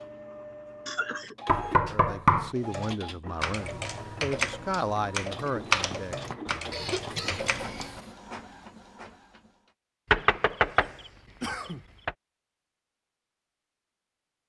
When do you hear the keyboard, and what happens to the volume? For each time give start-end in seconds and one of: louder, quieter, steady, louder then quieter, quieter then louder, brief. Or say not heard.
2.5-8.1 louder then quieter.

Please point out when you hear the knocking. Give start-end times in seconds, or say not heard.
1.4-2.5, 5.9-7.8, 10.1-12.2.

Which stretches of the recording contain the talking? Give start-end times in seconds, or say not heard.
1.9-6.2.